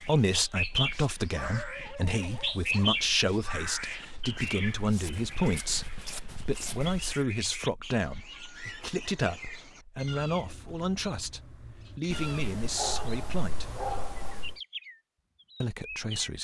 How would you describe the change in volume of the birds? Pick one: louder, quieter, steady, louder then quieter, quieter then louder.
quieter.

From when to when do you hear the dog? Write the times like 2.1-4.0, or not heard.
1.3-3.0, 12.1-14.6.